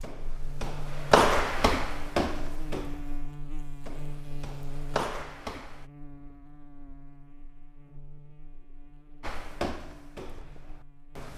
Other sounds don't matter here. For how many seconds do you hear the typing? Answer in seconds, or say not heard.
not heard.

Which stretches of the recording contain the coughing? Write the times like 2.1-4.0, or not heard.
not heard.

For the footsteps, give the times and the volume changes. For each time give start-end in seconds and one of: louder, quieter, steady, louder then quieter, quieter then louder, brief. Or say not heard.
0.0-5.8 quieter then louder
9.2-11.3 brief.